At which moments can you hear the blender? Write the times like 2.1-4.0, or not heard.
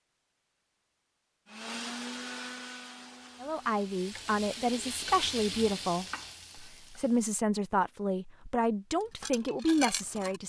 1.4-4.0.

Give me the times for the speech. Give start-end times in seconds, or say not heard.
3.4-10.4.